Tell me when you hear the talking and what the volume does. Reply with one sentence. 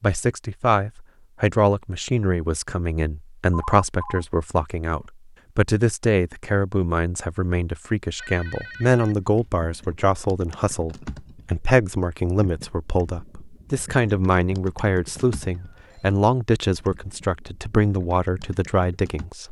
You can hear the talking from 0.0 to 19.4 s, at a steady volume.